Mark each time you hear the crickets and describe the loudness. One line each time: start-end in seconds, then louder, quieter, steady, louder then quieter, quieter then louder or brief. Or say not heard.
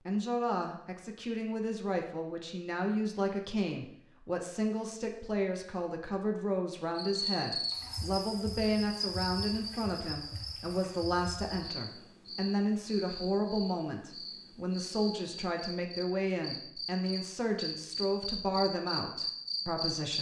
7.0-20.1 quieter then louder.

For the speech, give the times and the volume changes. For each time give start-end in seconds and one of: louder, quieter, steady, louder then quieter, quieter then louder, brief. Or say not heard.
0.1-20.1 steady.